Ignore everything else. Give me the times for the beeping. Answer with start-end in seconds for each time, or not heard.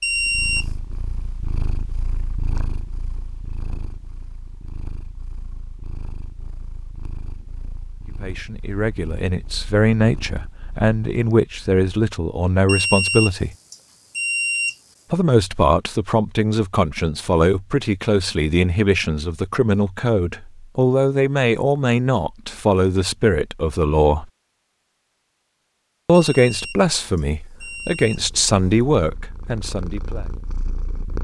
0.0-0.7, 12.7-14.8, 26.1-28.9.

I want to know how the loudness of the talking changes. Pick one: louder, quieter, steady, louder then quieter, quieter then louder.
steady.